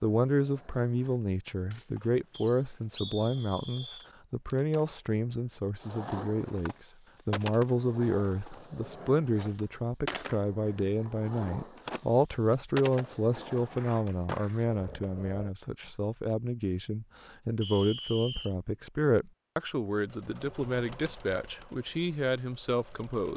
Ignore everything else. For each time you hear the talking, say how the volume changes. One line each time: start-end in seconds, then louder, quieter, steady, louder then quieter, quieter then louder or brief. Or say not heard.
0.0-23.3 steady.